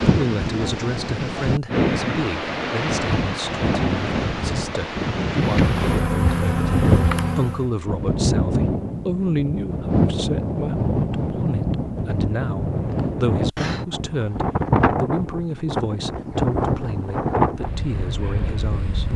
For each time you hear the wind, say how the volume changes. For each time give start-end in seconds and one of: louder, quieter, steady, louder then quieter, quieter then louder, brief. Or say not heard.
0.0-19.1 steady.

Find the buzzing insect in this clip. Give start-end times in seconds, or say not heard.
5.5-7.7.